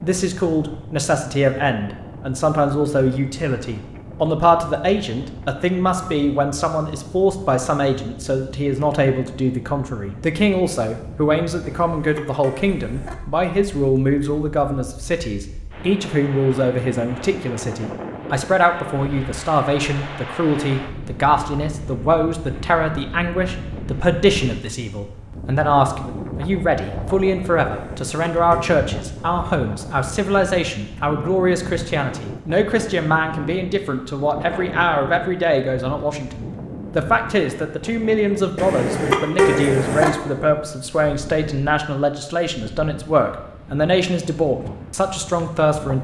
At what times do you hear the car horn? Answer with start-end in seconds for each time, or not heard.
11.6-13.2, 27.7-28.8, 38.5-40.1.